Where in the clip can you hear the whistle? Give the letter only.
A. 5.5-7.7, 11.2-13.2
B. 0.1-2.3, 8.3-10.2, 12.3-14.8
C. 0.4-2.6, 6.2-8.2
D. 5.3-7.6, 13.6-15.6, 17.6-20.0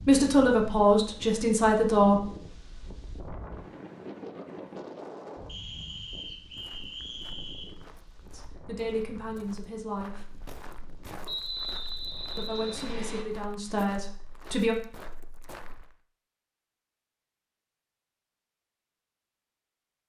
A.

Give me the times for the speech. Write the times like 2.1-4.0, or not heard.
0.1-2.3, 8.3-10.2, 12.3-14.8.